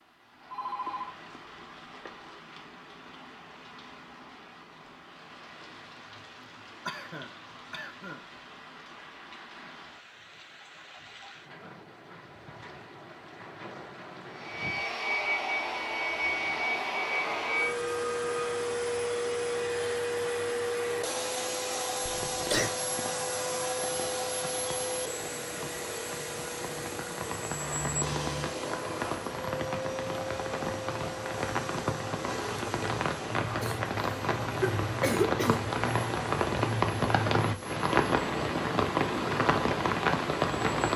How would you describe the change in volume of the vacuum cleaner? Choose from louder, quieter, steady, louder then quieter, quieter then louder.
quieter.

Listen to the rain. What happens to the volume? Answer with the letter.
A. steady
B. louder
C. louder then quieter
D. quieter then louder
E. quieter
B.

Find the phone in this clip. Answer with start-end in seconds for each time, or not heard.
0.5-2.2, 17.1-18.6, 27.4-28.5.